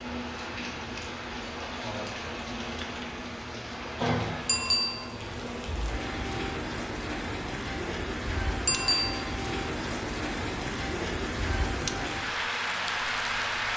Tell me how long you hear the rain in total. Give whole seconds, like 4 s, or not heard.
14 s.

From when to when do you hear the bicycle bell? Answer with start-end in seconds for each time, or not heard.
4.5-5.2, 8.7-9.3.